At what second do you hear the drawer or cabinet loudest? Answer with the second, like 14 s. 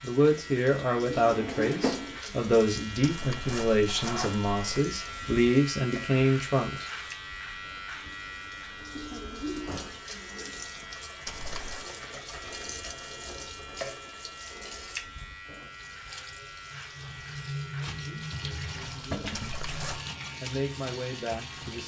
2 s.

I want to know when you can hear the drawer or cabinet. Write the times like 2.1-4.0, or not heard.
1.3-2.2, 9.4-10.0, 19.1-19.6.